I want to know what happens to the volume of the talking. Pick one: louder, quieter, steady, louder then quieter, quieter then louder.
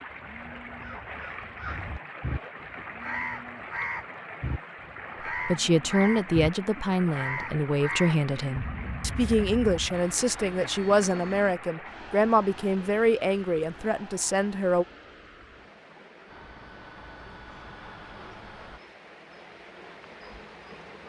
steady.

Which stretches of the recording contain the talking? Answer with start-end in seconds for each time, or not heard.
5.5-14.8.